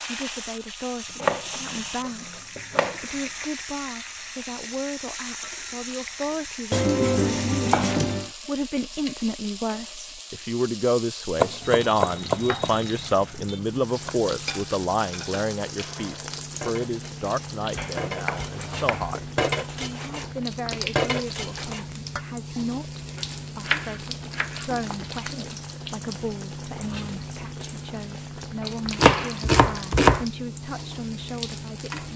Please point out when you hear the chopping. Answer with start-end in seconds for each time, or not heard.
1.2-3.5, 6.7-8.3, 11.3-14.1, 17.8-19.1, 23.1-24.6, 28.6-30.2.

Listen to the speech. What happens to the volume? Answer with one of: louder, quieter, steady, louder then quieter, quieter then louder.
louder then quieter.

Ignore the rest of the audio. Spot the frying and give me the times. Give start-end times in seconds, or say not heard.
0.0-32.1.